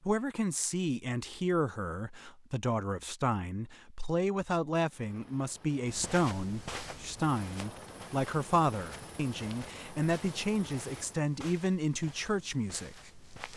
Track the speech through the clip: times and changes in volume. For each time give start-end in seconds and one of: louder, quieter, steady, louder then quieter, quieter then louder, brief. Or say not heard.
0.0-13.3 steady.